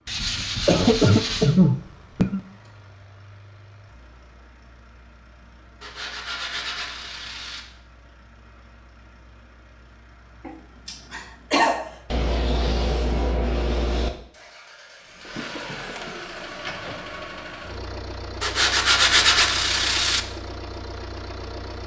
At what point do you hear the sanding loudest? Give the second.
19 s.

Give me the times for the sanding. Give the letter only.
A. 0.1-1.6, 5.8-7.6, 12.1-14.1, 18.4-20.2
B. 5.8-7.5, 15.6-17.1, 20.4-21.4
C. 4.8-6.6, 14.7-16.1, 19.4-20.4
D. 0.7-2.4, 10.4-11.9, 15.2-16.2
A.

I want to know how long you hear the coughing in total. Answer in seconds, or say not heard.
4 s.